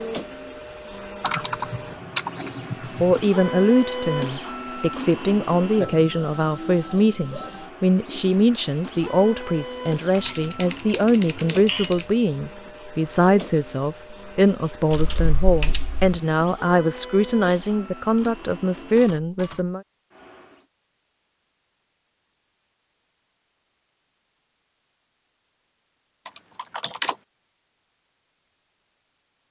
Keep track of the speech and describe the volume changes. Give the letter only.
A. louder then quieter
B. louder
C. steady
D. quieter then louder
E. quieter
C.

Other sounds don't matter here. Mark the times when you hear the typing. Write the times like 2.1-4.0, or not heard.
1.2-3.2, 10.1-12.1, 14.9-16.2, 26.2-27.1.